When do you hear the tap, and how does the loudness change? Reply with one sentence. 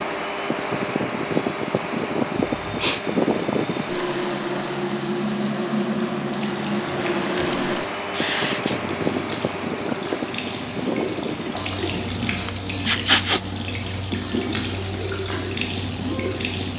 The tap can be heard from 0.0 to 16.7 s, getting louder.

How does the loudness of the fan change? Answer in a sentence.
The volume of the fan goes down.